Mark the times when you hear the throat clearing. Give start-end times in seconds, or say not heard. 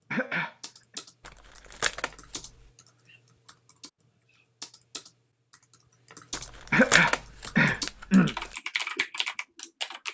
0.1-0.6, 6.7-8.3.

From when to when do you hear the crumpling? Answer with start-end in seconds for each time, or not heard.
1.2-2.7, 6.3-8.6.